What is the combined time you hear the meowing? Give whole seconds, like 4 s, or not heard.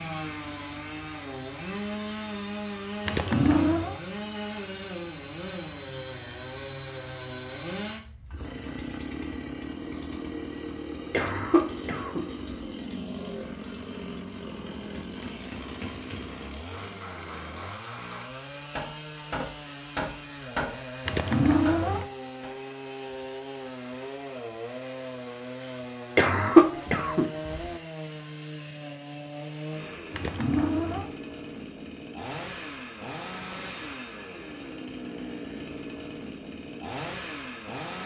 3 s.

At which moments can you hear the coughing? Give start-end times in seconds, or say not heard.
11.1-12.6, 26.1-27.6.